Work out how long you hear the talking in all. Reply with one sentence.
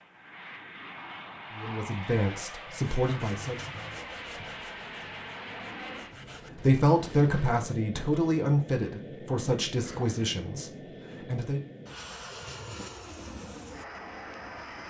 You can hear the talking for 7 seconds altogether.